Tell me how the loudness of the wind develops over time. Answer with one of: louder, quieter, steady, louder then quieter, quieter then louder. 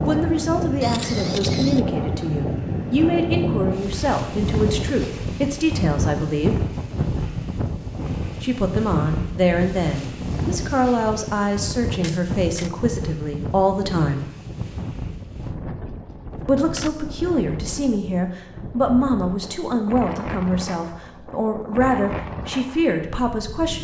quieter.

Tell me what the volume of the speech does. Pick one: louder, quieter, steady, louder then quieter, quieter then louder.
steady.